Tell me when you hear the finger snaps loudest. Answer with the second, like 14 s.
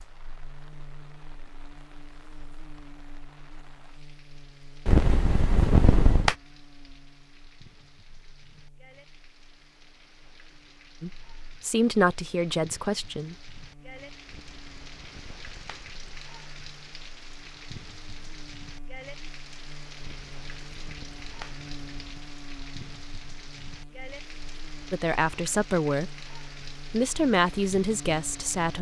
6 s.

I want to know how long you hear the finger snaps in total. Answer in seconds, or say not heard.
6 s.